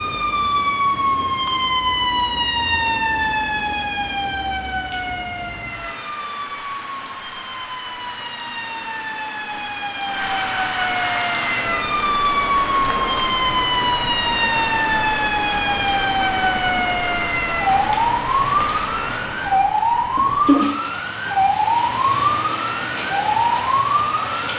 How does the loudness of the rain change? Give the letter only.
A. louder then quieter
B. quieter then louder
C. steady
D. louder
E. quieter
D.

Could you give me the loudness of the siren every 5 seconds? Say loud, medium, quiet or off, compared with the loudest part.
loud, medium, loud, loud, loud.